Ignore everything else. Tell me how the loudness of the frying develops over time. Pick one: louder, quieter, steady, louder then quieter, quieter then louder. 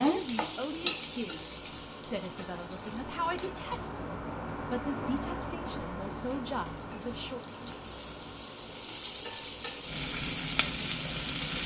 quieter then louder.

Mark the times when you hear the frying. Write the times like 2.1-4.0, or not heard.
0.0-11.6.